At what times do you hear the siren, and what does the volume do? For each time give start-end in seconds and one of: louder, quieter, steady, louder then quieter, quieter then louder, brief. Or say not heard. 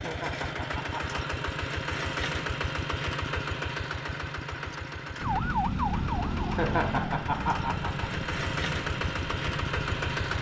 5.2-10.3 quieter.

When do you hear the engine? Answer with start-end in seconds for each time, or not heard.
0.0-10.3.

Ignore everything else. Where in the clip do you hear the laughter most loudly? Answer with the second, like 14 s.
7 s.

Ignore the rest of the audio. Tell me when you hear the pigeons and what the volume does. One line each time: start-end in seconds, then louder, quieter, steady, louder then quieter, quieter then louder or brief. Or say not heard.
not heard.